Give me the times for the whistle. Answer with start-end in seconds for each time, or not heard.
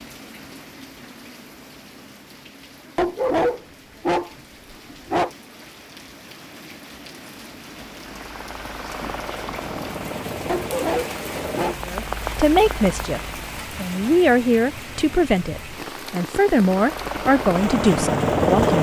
not heard.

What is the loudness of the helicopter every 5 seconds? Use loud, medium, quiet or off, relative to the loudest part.
off, quiet, medium, loud.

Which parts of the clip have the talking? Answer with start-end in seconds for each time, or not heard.
11.8-18.7.